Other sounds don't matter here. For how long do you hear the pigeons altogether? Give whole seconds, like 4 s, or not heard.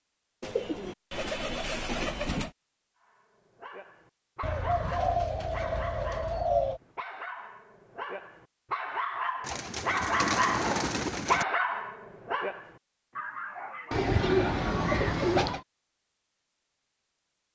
8 s.